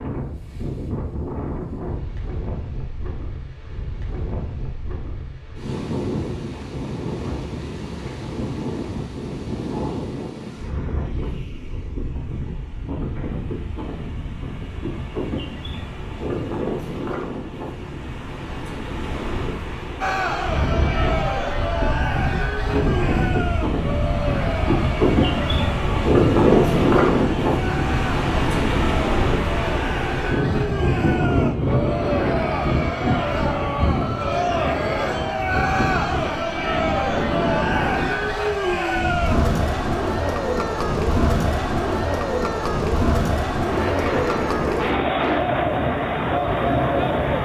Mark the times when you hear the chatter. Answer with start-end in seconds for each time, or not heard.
20.0-47.3.